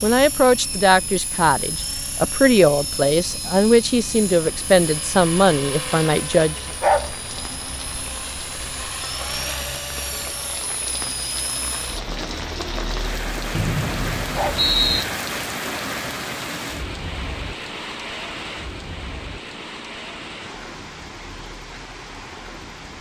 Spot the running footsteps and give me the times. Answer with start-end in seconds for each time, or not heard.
not heard.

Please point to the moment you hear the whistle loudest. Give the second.
15 s.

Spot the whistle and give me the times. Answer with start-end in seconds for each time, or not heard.
13.5-15.1.